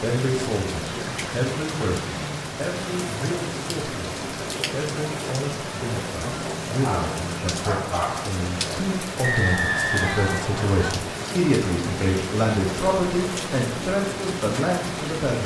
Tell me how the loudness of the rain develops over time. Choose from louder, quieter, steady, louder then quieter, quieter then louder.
steady.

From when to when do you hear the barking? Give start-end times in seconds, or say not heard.
6.8-8.3.